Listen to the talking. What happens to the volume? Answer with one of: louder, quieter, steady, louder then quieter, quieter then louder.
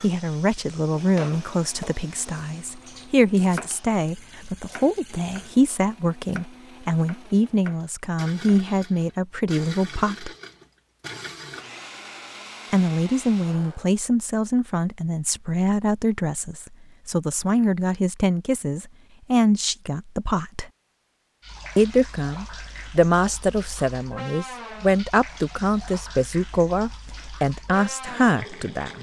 steady.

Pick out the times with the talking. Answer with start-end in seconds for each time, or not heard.
0.0-10.3, 12.7-20.6, 21.8-28.9.